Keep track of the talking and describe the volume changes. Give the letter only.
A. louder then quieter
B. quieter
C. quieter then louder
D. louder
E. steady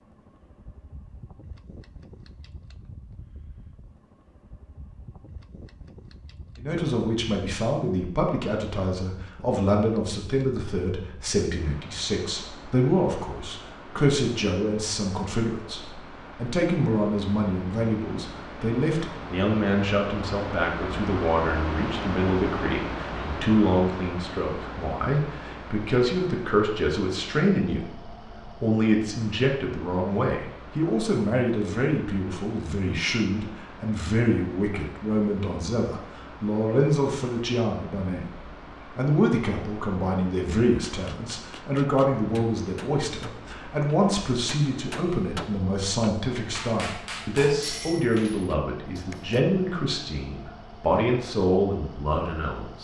E.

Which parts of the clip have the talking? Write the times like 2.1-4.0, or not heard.
6.5-52.7.